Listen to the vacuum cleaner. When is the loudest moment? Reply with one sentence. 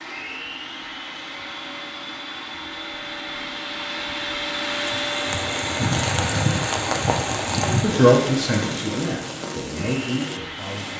The volume of the vacuum cleaner peaks at 5 seconds.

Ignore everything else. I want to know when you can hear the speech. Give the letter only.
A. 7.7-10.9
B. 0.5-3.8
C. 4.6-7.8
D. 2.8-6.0
A.